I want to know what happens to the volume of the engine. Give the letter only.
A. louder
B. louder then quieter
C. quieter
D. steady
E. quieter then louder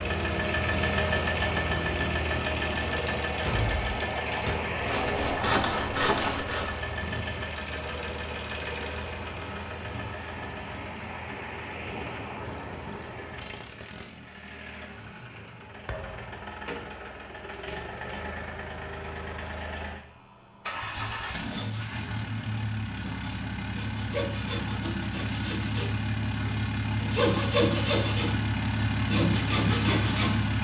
E.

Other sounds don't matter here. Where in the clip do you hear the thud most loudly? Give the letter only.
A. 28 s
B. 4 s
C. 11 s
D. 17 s
B.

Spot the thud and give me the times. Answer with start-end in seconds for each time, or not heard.
3.4-4.6, 15.8-16.5.